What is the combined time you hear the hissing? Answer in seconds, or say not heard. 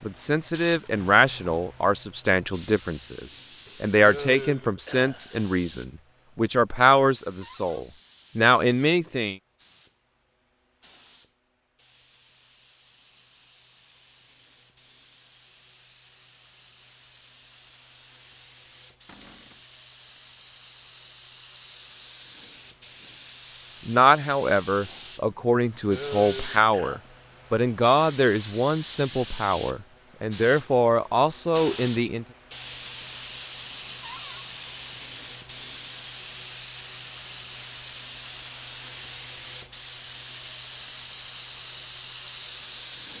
43 s.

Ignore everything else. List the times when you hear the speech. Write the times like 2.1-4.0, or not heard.
0.1-9.3, 23.9-32.2.